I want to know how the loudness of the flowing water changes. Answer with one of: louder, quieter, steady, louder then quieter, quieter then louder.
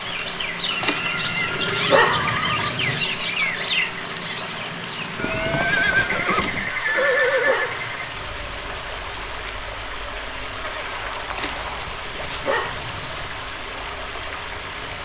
steady.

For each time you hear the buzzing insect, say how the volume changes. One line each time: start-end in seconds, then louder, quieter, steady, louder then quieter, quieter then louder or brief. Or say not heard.
not heard.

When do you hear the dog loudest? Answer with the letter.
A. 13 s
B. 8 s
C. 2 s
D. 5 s
C.